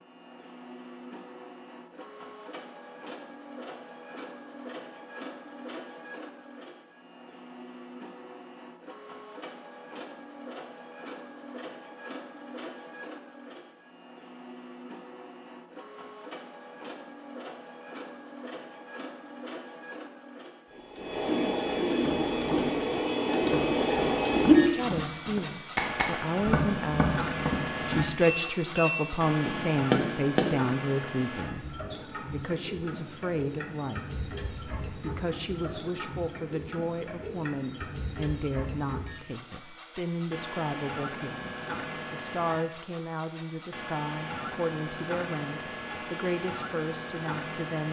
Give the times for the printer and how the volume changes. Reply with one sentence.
The printer can be heard from 0.0 to 47.8 s, getting louder then quieter.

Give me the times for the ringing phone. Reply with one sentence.
You can't hear the ringing phone here.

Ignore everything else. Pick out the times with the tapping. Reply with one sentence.
The tapping can be heard from 21.9 to 30.6 s.